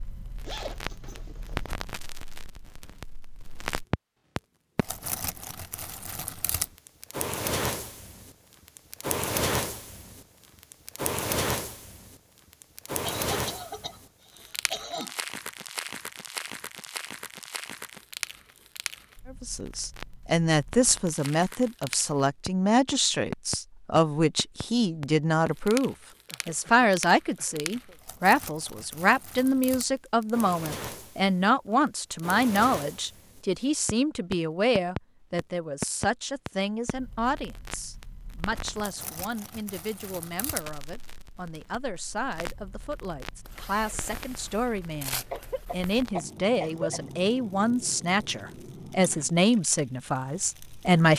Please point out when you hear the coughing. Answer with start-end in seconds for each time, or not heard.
13.1-15.2, 26.2-28.0, 45.3-47.0.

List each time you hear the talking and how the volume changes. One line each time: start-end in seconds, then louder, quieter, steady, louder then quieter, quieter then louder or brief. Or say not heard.
19.3-51.1 quieter then louder.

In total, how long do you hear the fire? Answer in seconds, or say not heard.
51 s.